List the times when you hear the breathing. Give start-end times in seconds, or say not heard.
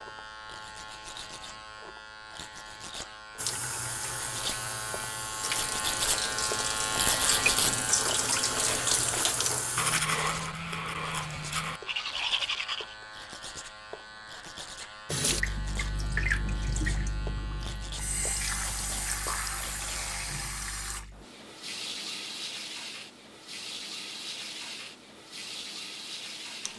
not heard.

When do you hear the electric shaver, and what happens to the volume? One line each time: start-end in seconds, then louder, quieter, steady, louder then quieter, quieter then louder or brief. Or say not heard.
0.0-20.6 louder then quieter.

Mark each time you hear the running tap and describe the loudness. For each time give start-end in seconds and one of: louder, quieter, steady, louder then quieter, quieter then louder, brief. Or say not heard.
3.4-10.0 louder
15.1-26.7 quieter.